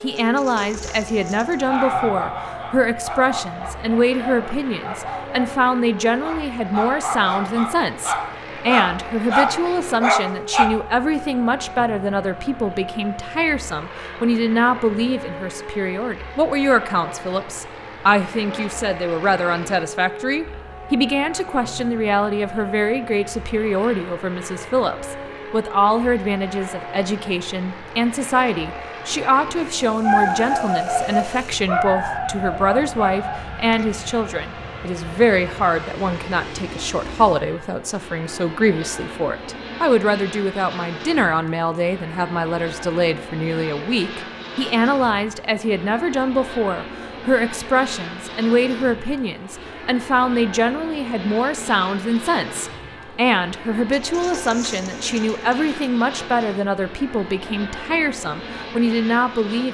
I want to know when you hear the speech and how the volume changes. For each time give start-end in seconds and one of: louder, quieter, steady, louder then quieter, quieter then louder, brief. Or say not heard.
0.0-59.6 steady.